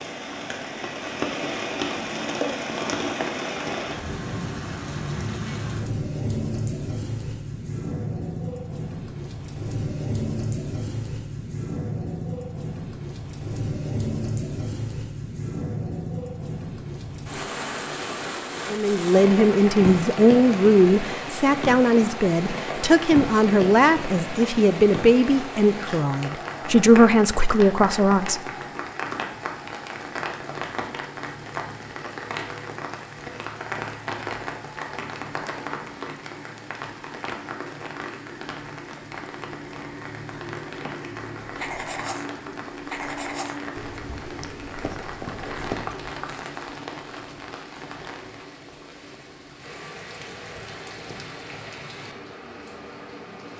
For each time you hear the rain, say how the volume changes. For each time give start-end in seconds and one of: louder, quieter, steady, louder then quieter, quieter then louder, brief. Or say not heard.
0.0-53.5 quieter.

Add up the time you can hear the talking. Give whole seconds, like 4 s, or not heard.
10 s.